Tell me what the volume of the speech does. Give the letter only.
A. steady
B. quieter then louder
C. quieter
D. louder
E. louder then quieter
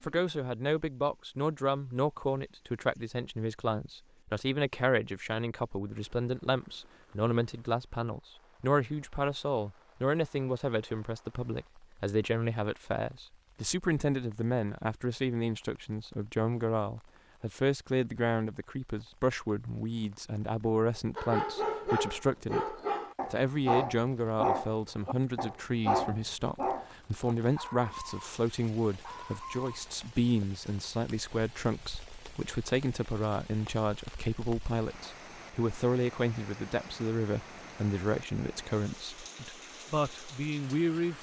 A.